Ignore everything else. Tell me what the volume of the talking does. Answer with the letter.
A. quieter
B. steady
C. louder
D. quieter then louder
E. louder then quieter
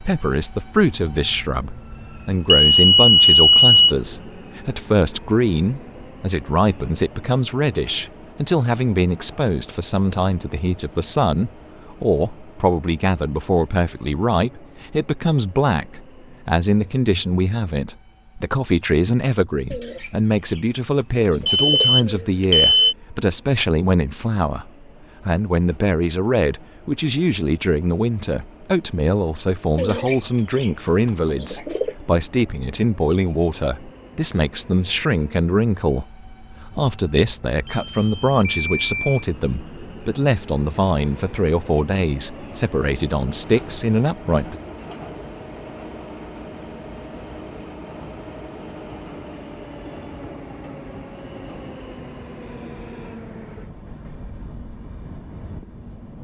B.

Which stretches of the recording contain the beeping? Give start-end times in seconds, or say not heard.
2.5-4.0, 21.4-22.9, 37.6-39.2.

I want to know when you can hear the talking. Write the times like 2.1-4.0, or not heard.
0.0-44.6.